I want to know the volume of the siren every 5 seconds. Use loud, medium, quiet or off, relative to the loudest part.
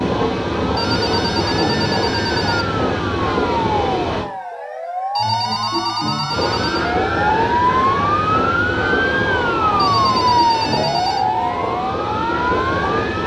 medium, loud, loud.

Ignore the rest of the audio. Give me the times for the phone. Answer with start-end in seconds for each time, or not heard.
0.8-2.6, 5.2-7.0, 9.8-11.2.